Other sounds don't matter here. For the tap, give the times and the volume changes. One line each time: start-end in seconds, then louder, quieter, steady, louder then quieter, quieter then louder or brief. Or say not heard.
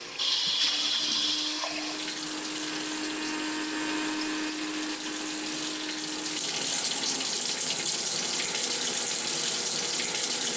0.0-10.5 quieter then louder.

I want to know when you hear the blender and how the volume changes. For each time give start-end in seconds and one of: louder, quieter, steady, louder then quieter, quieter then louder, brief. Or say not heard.
0.0-10.5 louder then quieter.